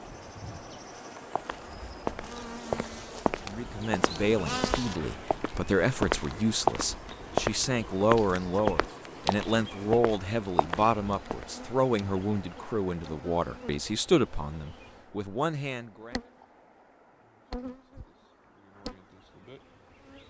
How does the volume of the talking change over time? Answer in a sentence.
The loudness of the talking stays about the same.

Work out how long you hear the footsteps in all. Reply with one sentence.
The footsteps can be heard for 10 seconds in total.